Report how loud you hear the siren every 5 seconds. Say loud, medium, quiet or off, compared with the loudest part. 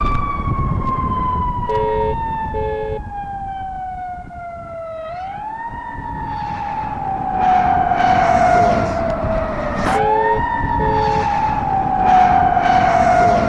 medium, loud, loud.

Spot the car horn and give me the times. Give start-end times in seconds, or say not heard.
1.6-3.0, 9.9-11.2.